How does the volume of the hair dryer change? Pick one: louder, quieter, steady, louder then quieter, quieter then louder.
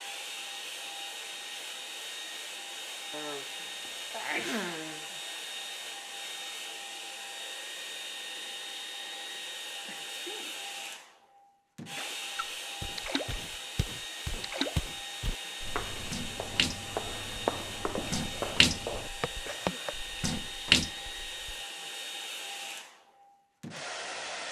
steady.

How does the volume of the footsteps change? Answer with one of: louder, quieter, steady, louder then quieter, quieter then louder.
louder.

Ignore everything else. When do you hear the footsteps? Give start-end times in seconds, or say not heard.
12.8-19.9.